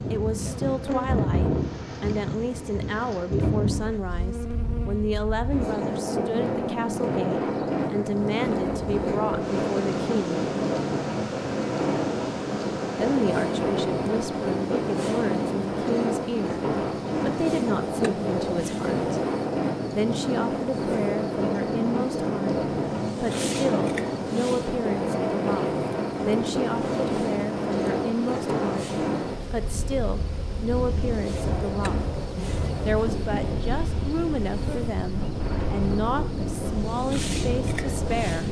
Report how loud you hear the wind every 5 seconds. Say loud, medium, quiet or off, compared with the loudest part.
loud, loud, loud, loud, loud, loud, medium, loud.